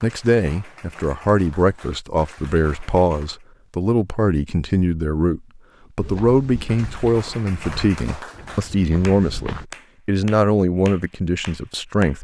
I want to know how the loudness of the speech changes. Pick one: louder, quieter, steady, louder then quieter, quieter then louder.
steady.